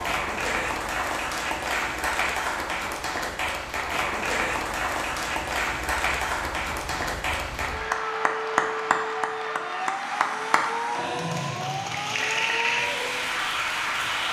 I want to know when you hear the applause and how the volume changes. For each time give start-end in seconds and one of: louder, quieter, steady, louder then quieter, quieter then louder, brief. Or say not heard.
0.0-14.2 steady.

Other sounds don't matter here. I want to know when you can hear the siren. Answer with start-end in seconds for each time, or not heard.
0.0-14.2.